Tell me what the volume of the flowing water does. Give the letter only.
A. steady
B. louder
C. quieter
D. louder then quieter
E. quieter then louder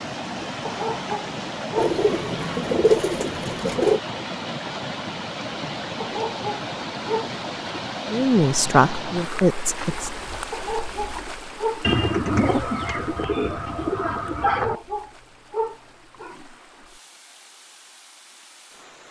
C.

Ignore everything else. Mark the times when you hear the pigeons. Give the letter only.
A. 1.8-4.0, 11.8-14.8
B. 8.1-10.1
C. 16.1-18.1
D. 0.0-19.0
A.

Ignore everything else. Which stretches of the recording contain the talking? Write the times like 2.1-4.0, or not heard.
8.1-10.1.